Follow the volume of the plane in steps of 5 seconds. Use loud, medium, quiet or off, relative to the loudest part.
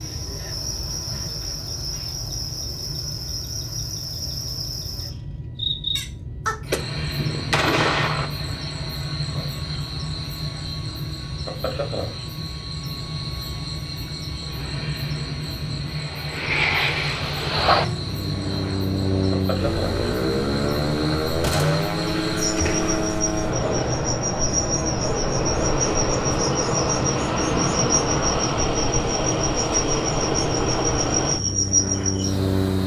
quiet, quiet, quiet, loud, loud, loud, loud.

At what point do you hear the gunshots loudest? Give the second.
8 s.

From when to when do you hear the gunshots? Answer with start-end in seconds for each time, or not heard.
6.7-8.3, 21.4-23.2.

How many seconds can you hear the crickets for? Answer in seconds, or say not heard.
33 s.